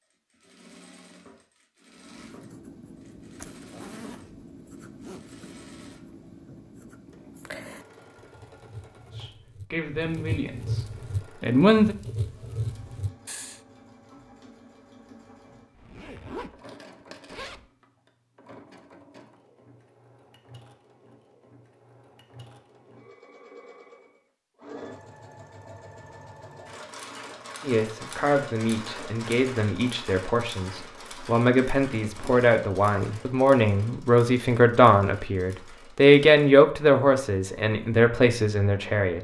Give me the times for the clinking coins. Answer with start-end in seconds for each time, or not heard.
16.6-17.4.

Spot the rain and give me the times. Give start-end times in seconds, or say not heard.
not heard.